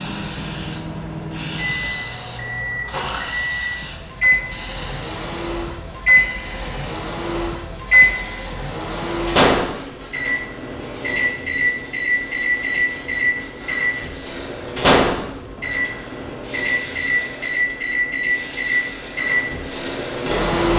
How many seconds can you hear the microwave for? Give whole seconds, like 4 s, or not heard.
21 s.